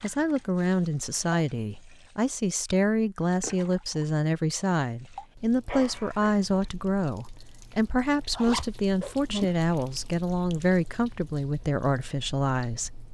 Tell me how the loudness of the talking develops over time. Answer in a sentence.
The loudness of the talking stays about the same.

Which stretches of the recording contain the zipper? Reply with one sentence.
The zipper can be heard from 8.3 to 9.4 s.